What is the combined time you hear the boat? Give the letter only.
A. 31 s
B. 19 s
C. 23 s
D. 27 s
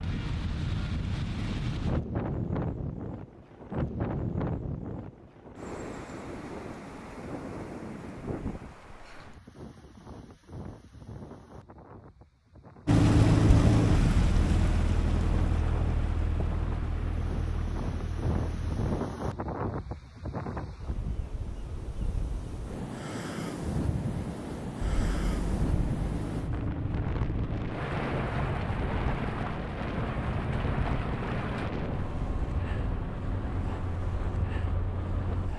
B.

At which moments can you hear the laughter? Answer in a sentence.
You can't hear the laughter here.